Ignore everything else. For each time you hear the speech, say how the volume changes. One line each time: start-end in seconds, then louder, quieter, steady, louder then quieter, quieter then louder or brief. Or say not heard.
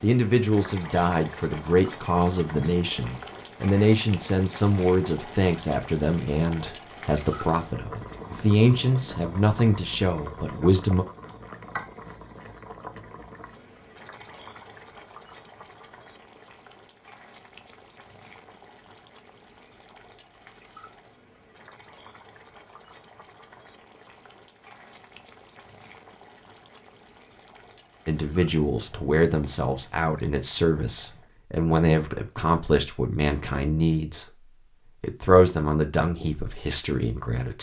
0.0-11.1 steady
28.1-37.5 steady.